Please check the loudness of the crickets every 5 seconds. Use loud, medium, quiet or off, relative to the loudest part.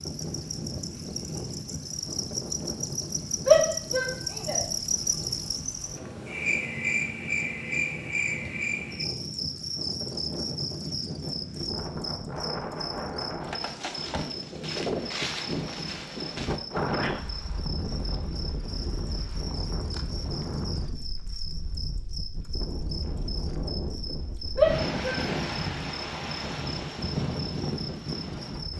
loud, loud, medium, medium, medium, medium.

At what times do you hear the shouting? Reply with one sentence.
You can hear the shouting from 3.5 to 4.6 s and from 24.6 to 25.2 s.